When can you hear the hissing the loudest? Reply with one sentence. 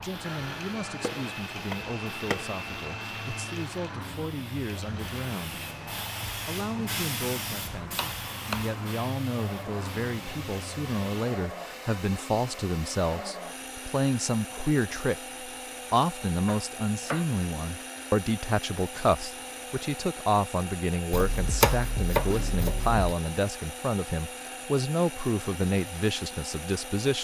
The loudest moment of the hissing is at 7 seconds.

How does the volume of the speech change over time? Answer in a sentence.
The loudness of the speech goes up.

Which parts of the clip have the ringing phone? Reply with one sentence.
You can't hear the ringing phone here.